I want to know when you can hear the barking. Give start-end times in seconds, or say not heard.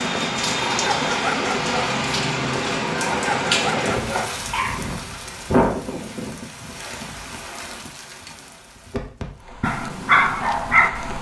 0.0-5.0, 9.6-11.1.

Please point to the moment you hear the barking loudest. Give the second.
10 s.